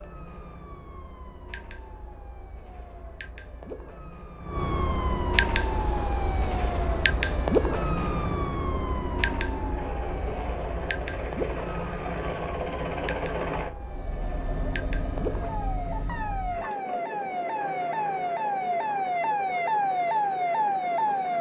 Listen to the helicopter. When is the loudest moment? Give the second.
13 s.